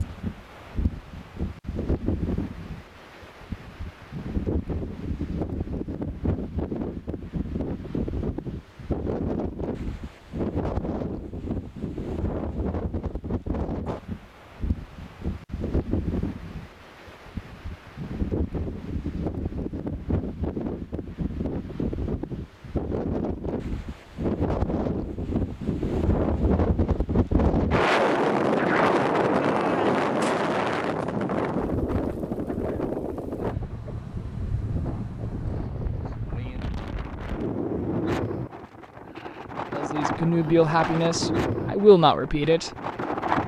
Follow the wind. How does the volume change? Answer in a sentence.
The loudness of the wind goes up, then down.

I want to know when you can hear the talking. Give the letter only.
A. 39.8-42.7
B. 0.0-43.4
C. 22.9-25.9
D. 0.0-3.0
A.